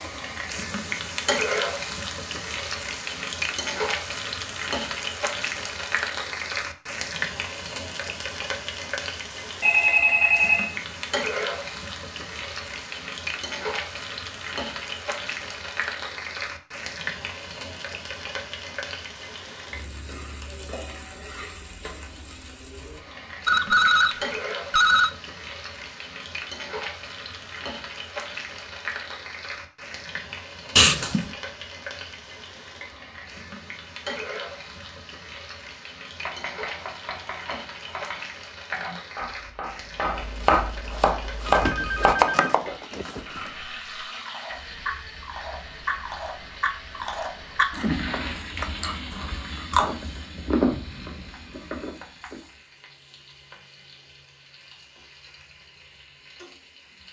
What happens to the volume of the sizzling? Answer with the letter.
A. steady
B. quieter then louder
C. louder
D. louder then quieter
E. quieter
E.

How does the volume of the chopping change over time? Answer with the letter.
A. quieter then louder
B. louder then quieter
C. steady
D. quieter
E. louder
E.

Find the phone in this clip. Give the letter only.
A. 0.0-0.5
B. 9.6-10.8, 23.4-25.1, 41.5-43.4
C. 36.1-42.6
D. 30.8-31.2
B.